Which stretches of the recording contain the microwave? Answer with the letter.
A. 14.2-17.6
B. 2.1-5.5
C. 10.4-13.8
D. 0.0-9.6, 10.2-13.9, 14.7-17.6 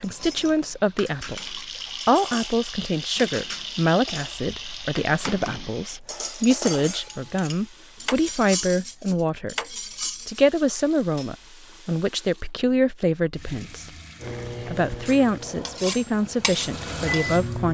A.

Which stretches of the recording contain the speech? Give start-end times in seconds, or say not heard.
0.0-9.6, 10.2-13.9, 14.7-17.6.